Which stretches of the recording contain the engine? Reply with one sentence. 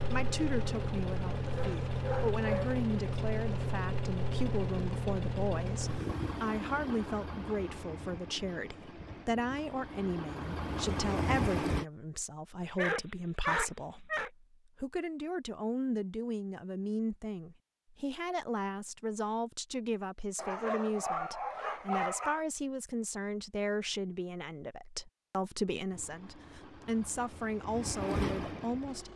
The engine can be heard from 0.0 to 11.8 s and from 25.9 to 29.1 s.